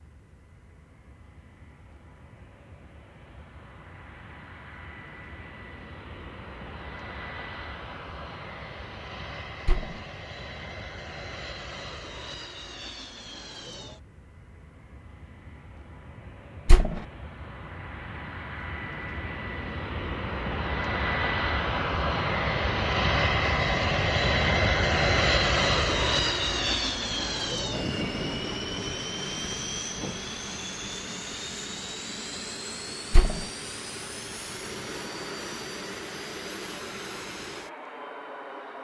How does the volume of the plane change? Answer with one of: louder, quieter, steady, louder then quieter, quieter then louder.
louder then quieter.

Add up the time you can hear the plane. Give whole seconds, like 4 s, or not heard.
39 s.